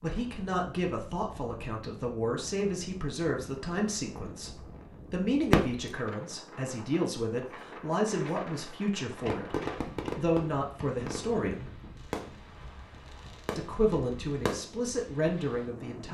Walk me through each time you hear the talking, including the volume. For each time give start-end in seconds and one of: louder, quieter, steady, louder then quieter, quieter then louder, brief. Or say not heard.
0.0-11.8 steady
13.6-16.0 brief.